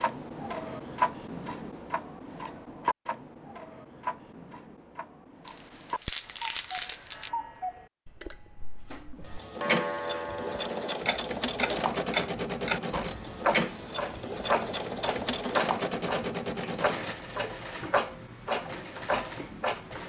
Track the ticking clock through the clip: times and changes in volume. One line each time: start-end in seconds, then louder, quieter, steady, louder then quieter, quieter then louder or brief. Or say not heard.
0.0-20.0 quieter then louder.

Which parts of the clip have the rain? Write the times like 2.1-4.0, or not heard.
not heard.